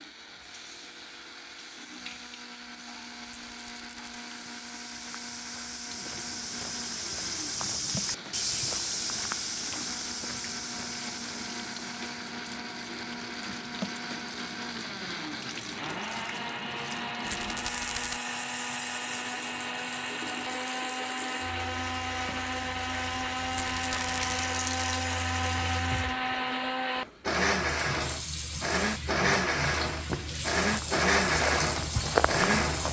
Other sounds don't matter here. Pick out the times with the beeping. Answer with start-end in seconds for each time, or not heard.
not heard.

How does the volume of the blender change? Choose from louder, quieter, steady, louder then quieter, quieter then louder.
louder.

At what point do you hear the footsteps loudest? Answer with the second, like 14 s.
32 s.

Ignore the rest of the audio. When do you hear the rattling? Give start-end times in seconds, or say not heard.
3.2-4.2, 17.2-18.2, 23.5-24.4.